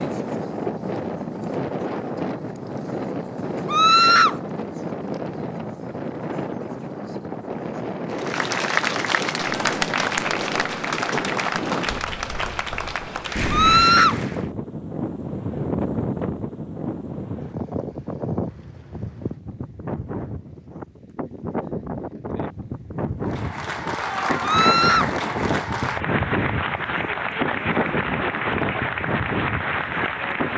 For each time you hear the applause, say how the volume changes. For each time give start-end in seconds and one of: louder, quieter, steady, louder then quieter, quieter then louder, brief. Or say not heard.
8.1-14.5 quieter
23.2-30.5 steady.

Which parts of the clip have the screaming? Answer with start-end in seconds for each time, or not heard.
3.6-4.3, 13.5-14.2, 24.4-25.1.